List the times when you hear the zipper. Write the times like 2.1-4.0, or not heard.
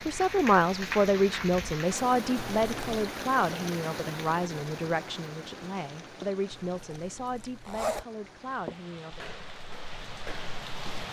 2.4-3.0, 6.7-8.1.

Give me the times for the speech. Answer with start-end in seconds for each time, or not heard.
0.1-9.3.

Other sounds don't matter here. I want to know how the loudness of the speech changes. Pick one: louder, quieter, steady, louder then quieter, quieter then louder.
quieter.